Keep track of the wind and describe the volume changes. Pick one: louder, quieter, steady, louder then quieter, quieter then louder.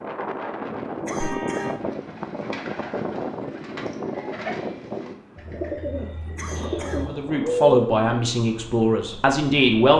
quieter.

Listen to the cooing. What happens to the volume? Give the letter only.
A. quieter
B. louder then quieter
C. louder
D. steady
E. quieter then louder
C.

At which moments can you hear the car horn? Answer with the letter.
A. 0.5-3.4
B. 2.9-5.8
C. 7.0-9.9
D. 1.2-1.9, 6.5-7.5
D.